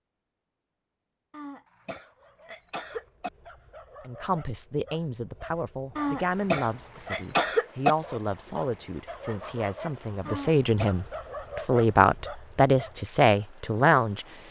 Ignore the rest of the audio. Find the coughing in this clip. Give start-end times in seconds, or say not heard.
1.3-3.3, 6.0-8.0, 10.2-10.8.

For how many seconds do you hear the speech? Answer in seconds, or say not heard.
10 s.